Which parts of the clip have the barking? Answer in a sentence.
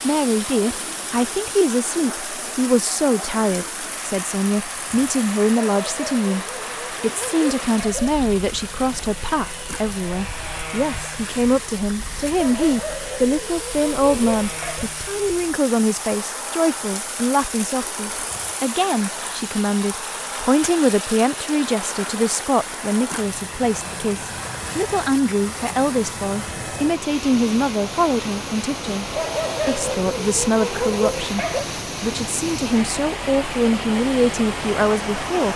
The barking can be heard from 5.8 to 8.2 s, from 12.3 to 14.9 s and from 29.1 to 31.6 s.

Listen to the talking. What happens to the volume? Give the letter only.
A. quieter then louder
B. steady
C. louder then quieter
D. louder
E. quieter
B.